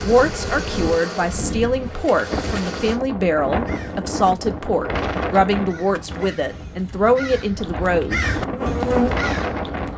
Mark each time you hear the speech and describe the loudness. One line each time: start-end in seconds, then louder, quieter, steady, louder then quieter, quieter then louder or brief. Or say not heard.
0.0-8.3 steady.